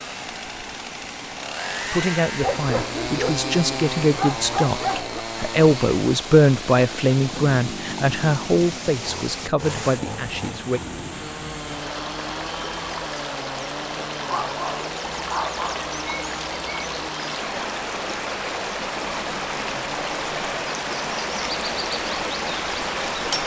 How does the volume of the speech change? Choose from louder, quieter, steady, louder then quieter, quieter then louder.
louder then quieter.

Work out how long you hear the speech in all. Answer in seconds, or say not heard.
9 s.